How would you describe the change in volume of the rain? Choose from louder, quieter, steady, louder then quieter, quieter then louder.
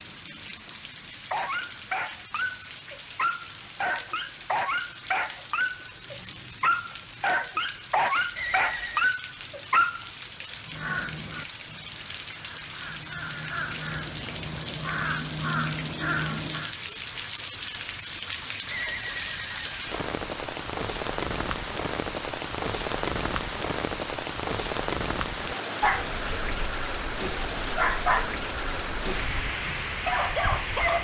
louder.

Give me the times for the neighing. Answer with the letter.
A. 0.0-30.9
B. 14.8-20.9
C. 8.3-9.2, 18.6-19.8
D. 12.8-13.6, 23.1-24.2
C.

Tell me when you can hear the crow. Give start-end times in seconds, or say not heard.
10.7-16.8.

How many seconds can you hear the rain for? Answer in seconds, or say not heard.
31 s.